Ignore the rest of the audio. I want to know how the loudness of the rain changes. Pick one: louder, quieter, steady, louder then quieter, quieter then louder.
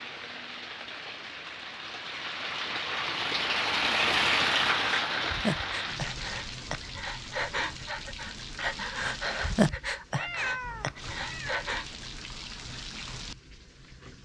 louder then quieter.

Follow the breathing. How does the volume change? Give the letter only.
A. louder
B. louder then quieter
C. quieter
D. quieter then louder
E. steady
B.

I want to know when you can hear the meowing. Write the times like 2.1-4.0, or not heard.
10.2-11.7.